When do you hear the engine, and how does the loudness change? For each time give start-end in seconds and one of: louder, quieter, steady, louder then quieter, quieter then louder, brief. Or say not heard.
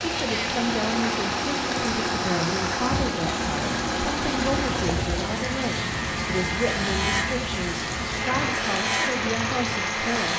0.0-10.3 steady.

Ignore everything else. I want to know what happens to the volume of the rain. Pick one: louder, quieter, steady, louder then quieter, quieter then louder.
steady.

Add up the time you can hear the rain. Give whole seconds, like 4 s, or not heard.
10 s.